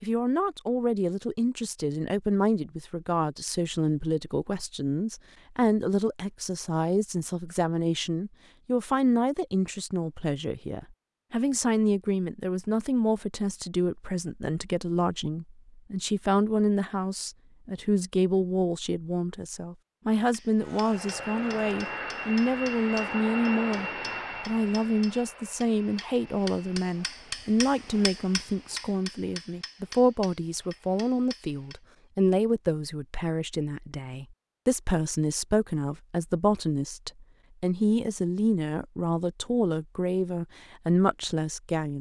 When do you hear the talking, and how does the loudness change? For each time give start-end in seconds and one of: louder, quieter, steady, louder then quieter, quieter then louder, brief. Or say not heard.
0.0-41.9 steady.